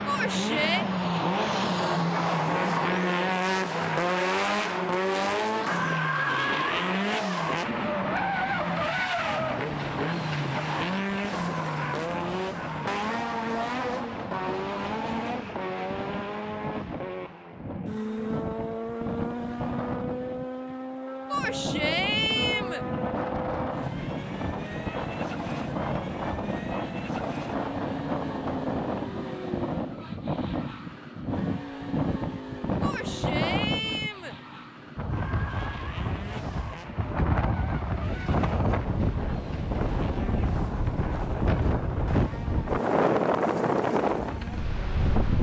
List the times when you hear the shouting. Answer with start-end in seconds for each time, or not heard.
0.1-0.8, 21.3-22.9, 32.8-34.4.